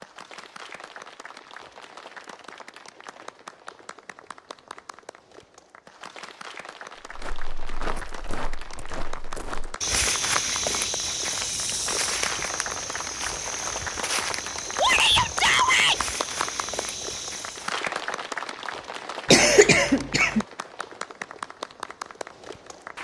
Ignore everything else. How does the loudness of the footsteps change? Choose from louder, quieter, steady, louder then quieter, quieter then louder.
louder then quieter.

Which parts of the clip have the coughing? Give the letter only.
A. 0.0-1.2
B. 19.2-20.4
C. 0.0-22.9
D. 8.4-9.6
B.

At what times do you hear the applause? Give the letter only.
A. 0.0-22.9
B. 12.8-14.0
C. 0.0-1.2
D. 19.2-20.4
A.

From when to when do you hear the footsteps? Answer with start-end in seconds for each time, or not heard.
7.1-17.8.